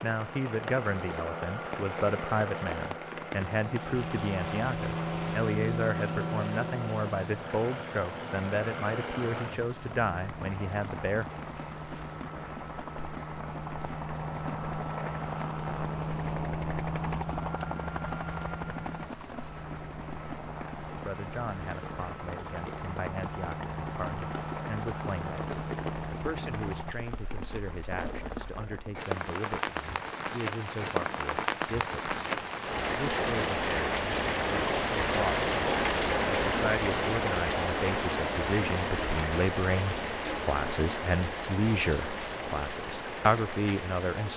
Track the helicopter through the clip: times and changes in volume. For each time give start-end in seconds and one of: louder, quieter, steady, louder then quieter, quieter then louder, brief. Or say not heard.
0.0-26.9 steady.